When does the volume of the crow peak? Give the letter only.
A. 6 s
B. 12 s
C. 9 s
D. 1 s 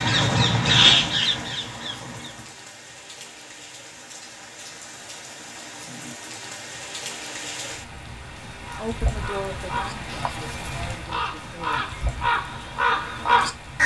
D.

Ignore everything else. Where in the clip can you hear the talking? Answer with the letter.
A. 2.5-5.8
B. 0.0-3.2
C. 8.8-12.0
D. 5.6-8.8
C.